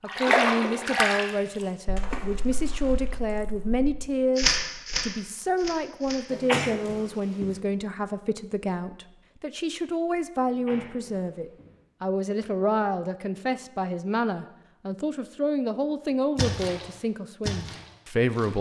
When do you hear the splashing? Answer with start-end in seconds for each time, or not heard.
0.1-1.2, 1.9-6.9, 16.4-18.5.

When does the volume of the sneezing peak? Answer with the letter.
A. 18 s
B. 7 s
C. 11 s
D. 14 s
B.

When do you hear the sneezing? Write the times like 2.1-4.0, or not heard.
6.3-7.6, 10.4-11.8.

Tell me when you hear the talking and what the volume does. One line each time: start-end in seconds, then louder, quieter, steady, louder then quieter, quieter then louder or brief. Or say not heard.
0.0-18.5 steady.